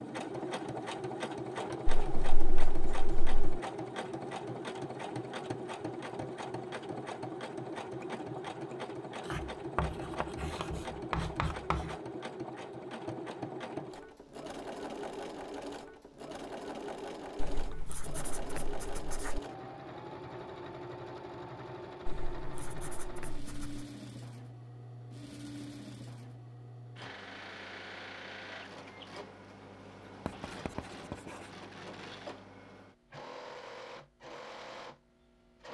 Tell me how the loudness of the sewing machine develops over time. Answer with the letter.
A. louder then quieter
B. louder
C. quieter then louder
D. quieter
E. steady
D.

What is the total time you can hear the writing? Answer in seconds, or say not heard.
9 s.